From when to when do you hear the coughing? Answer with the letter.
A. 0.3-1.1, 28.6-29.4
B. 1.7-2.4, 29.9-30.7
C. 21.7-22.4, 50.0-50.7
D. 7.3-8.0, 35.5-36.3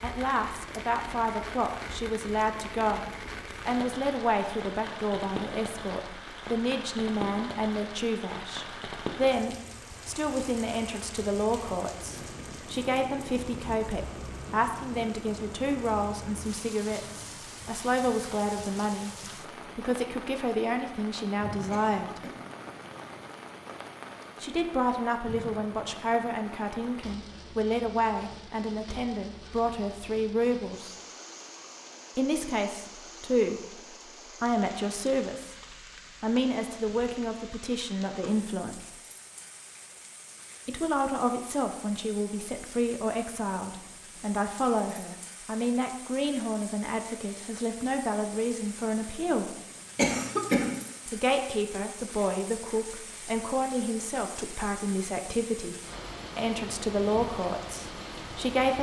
C.